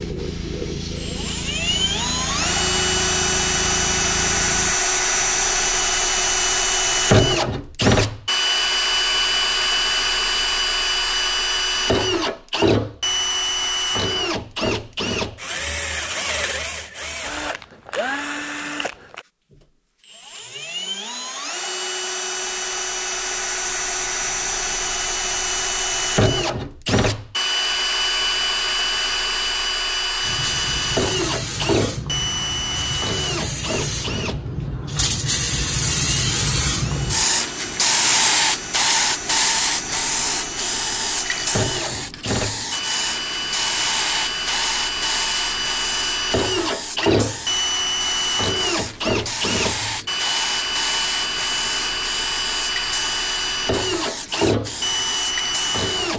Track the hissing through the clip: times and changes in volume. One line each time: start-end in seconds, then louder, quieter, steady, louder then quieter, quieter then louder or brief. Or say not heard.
0.0-4.8 steady
30.2-56.1 louder then quieter.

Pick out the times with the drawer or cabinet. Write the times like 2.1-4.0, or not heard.
not heard.